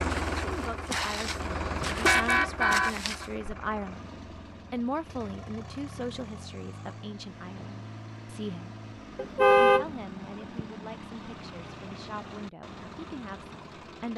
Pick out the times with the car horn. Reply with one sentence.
The car horn can be heard from 1.5 to 3.2 s and from 9.2 to 9.8 s.